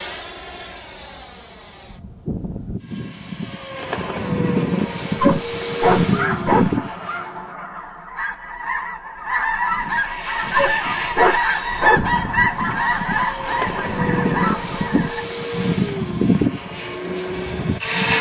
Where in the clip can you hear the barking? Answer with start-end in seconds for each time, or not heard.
5.2-6.7, 10.5-12.1.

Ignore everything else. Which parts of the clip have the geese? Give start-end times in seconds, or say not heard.
6.0-15.2.